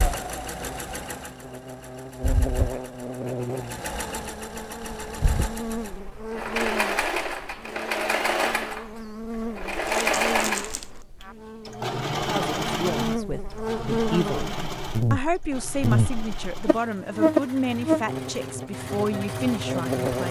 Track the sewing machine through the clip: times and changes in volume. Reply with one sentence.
You can hear the sewing machine from 0.0 to 20.2 s, getting louder then quieter.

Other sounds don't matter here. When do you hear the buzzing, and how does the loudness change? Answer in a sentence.
You can hear the buzzing from 0.1 to 20.2 s, getting louder.